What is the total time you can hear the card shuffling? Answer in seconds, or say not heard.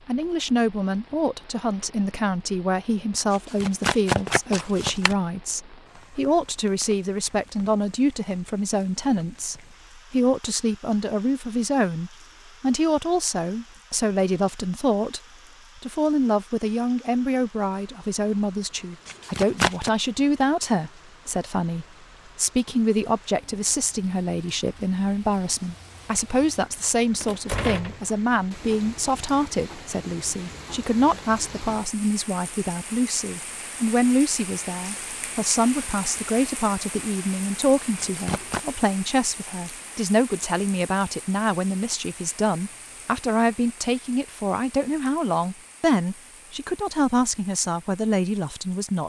3 s.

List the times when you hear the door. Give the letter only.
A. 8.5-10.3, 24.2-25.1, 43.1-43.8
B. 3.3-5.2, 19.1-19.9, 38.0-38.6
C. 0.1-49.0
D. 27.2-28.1
D.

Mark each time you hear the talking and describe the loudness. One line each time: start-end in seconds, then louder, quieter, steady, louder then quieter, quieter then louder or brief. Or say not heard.
0.1-49.0 steady.